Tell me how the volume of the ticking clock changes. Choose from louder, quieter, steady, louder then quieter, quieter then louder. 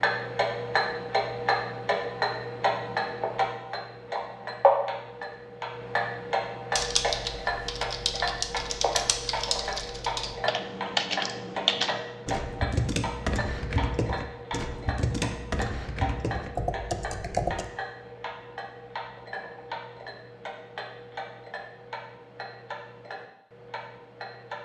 quieter.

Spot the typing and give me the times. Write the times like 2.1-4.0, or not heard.
6.8-17.7.